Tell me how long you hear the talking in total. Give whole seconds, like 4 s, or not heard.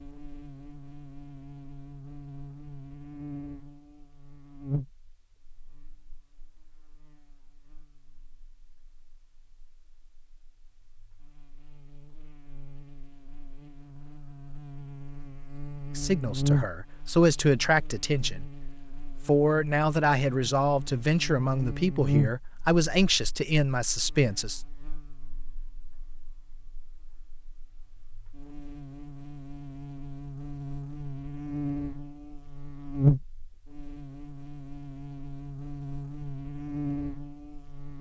8 s.